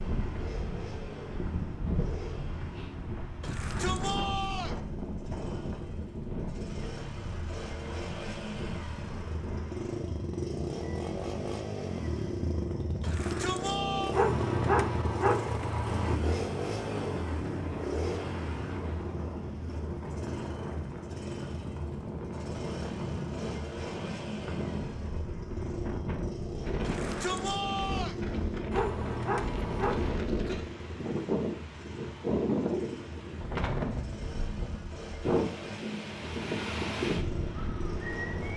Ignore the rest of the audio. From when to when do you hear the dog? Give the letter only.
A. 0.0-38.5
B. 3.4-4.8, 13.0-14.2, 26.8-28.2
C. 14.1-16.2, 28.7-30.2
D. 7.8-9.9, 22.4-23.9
C.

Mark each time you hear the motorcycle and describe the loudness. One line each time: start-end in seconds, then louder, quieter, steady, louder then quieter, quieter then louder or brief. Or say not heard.
0.0-38.5 louder then quieter.